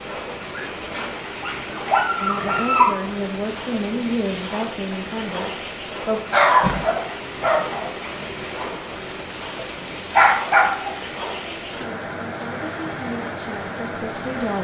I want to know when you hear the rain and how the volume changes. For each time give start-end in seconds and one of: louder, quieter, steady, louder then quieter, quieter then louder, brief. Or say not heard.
0.0-14.5 steady.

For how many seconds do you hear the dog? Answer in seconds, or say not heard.
5 s.